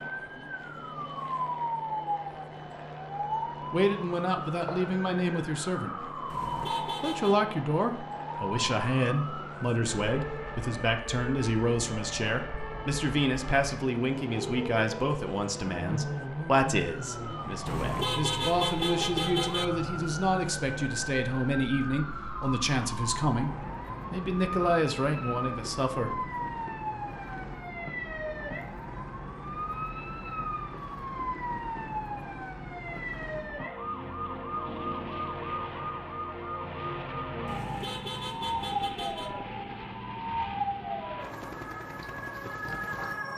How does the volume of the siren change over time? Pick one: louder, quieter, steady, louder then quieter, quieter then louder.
steady.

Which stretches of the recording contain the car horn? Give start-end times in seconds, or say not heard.
6.3-7.4, 17.6-19.6, 37.5-39.4.